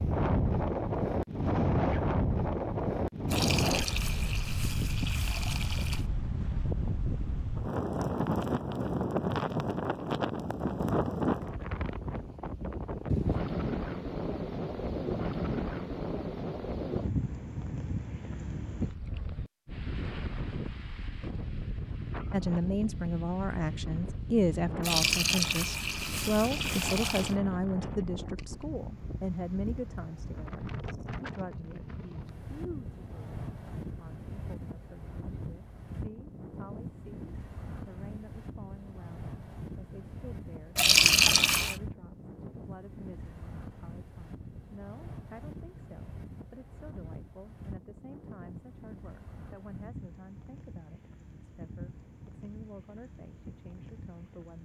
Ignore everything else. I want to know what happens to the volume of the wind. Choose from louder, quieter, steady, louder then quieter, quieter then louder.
quieter.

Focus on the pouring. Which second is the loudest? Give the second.
41 s.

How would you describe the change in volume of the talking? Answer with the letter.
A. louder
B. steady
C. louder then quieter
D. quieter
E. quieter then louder
D.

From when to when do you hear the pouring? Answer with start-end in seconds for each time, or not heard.
3.2-6.0, 24.8-27.4, 40.8-41.8.